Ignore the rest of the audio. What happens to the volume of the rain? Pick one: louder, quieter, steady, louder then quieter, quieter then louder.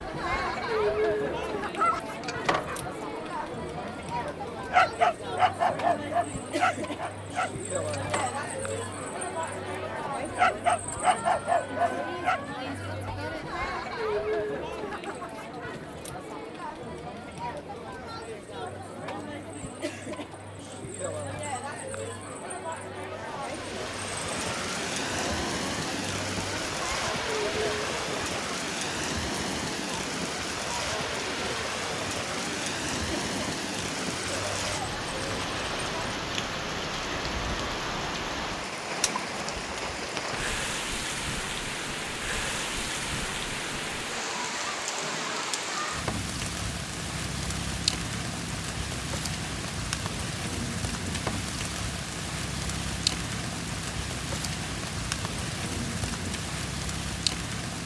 steady.